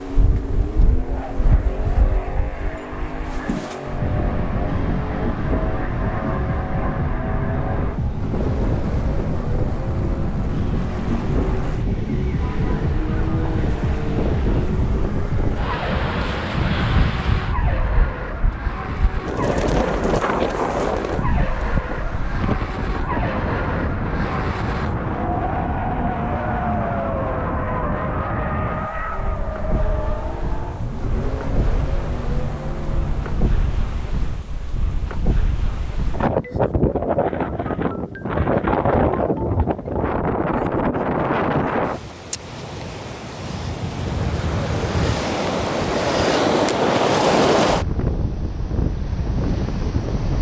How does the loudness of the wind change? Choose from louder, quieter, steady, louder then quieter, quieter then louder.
louder.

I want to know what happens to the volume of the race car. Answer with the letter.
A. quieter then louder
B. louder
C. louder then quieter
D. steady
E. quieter
D.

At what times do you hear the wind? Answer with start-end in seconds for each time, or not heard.
0.0-50.3.